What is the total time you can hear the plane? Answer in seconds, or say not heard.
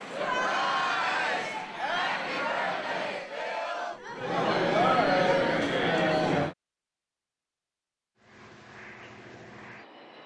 5 s.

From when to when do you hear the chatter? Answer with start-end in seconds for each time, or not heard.
0.0-6.5.